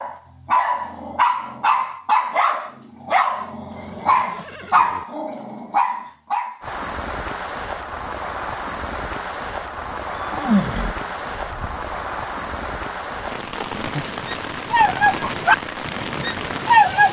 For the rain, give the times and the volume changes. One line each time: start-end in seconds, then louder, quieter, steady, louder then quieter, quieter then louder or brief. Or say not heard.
6.6-17.0 steady.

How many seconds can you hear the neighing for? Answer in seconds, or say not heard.
3 s.